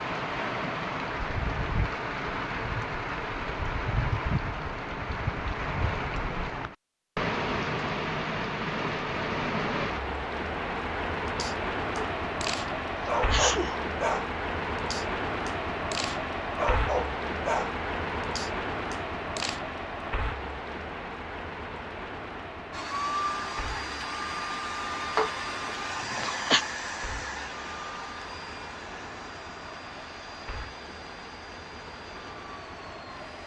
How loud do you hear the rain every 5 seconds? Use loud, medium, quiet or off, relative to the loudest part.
loud, loud, loud, loud, medium, quiet, quiet.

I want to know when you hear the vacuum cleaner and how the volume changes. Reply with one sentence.
The vacuum cleaner can be heard from 22.7 to 33.4 s, getting quieter.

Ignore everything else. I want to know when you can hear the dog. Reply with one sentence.
You can hear the dog from 11.2 to 19.6 s.